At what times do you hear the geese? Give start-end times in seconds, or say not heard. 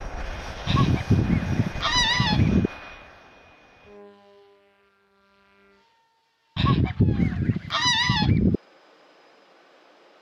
0.7-2.7, 6.5-8.6.